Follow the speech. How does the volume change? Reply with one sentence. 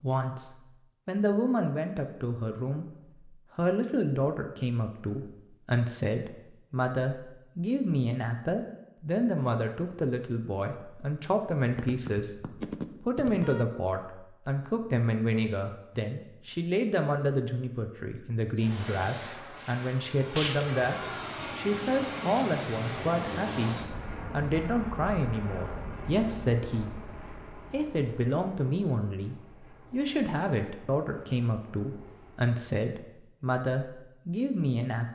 The volume of the speech stays about the same.